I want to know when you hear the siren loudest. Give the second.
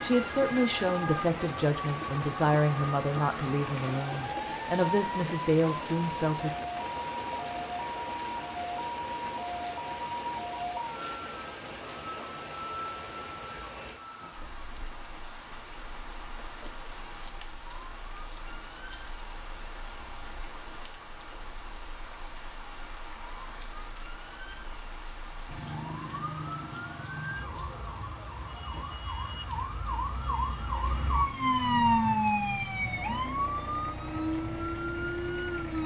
32 s.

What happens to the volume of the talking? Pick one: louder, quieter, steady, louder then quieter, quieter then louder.
steady.